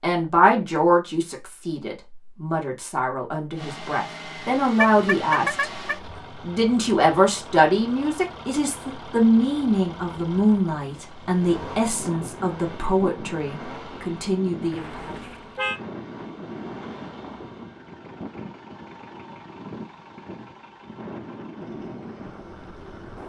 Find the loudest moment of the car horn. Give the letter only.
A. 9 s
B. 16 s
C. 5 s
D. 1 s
C.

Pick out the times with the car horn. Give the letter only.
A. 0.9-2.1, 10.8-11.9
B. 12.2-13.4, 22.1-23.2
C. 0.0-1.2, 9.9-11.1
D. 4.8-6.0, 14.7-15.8
D.